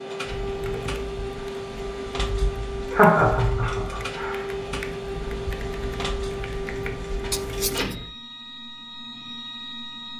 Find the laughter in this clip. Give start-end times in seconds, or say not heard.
2.9-4.5.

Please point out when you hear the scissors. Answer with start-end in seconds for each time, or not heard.
7.3-8.0.